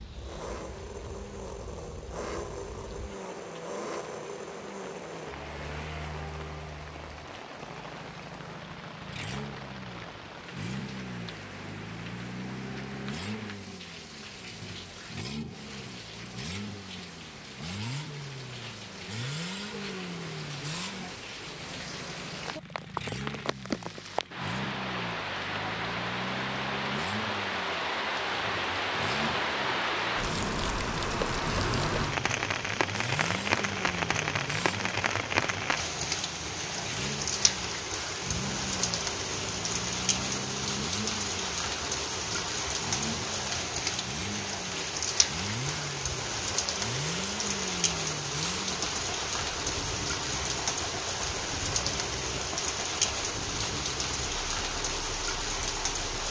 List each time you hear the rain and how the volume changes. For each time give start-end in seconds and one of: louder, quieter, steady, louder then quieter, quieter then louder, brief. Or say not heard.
0.0-56.2 louder.